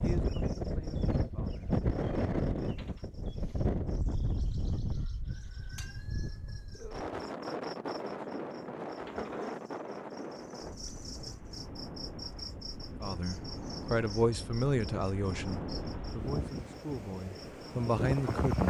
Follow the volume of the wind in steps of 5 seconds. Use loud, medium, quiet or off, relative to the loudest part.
loud, medium, medium, loud.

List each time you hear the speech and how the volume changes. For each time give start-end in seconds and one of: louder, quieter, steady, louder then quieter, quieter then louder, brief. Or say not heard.
0.0-1.8 brief
13.0-18.6 quieter then louder.